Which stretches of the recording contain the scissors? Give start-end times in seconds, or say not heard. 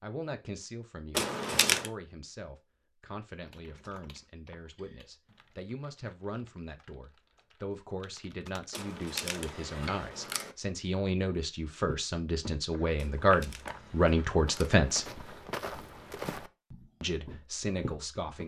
1.1-1.9, 8.7-10.6, 12.9-14.8.